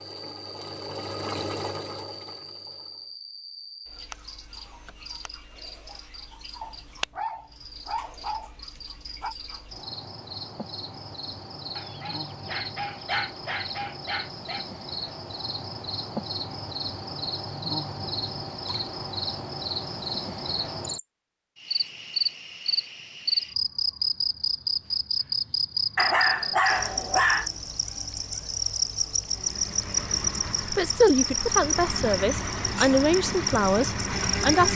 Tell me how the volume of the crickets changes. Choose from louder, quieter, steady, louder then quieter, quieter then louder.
louder.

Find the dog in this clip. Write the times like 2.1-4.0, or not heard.
6.6-9.3, 11.8-14.7, 25.9-27.5.